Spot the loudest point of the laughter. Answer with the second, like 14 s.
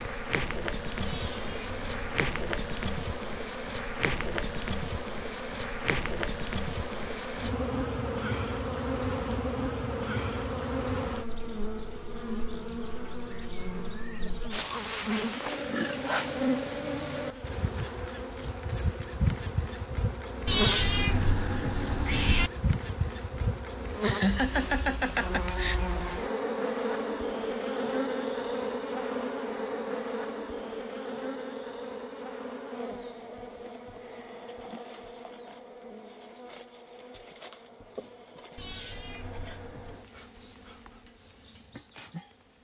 24 s.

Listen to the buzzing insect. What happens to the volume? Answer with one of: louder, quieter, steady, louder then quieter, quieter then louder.
quieter.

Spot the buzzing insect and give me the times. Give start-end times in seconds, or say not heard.
0.0-42.6.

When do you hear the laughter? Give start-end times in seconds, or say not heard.
24.0-25.8.